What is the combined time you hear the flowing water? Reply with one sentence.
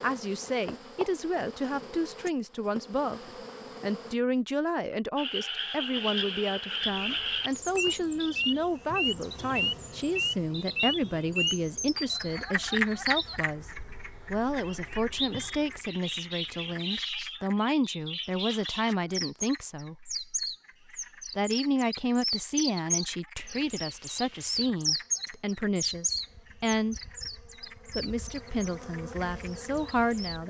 You can't hear the flowing water here.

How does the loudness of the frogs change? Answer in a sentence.
The volume of the frogs goes down.